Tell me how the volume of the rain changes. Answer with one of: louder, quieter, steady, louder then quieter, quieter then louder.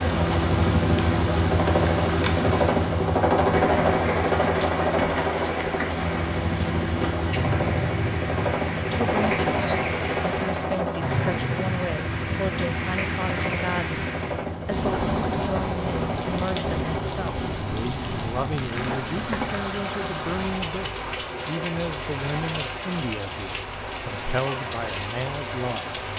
steady.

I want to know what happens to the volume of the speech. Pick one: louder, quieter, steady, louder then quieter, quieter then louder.
steady.